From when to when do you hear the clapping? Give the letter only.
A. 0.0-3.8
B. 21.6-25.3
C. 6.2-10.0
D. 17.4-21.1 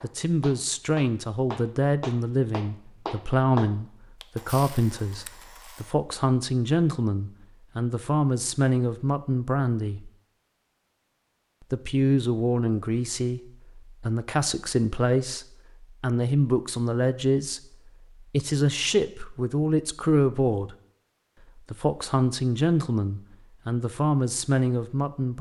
A.